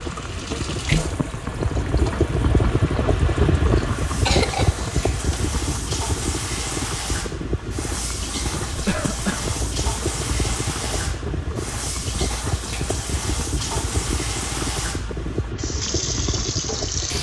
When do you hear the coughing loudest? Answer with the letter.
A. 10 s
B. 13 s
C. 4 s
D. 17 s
C.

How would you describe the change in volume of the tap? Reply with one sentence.
The loudness of the tap stays about the same.